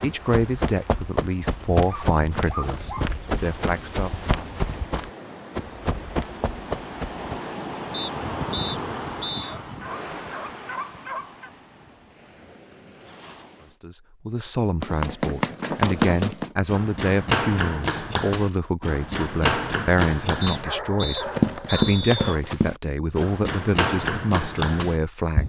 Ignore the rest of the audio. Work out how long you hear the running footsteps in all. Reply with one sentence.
You can hear the running footsteps for 18 seconds altogether.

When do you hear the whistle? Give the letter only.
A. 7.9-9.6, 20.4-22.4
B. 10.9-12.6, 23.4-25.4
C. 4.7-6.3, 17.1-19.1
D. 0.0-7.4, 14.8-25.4
A.